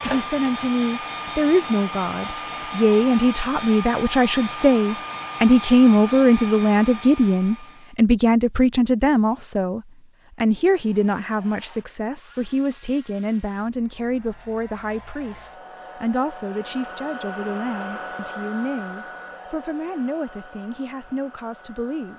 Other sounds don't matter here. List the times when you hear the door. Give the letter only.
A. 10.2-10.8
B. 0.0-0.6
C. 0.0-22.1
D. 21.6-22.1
B.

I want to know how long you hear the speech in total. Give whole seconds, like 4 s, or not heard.
22 s.